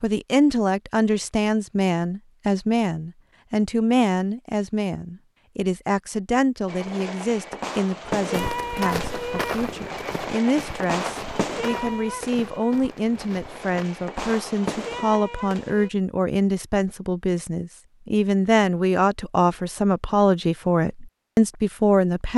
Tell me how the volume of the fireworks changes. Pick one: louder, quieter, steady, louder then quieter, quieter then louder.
quieter then louder.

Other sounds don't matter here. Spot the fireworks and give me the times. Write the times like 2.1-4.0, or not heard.
6.7-15.9.